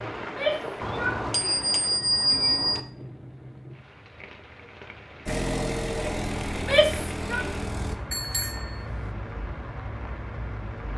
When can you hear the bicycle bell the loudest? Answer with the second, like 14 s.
2 s.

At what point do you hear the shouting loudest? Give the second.
7 s.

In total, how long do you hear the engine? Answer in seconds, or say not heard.
3 s.